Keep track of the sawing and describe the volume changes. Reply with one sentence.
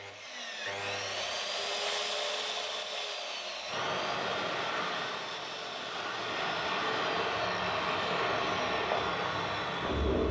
The loudness of the sawing goes down.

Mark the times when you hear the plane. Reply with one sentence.
The plane can be heard from 3.7 to 10.2 s.